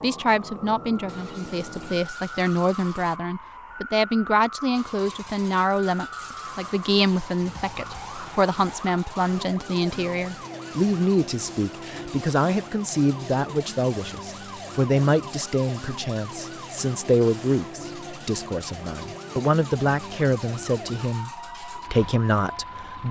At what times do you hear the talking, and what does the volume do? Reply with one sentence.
You can hear the talking from 0.0 to 23.0 s, at a steady volume.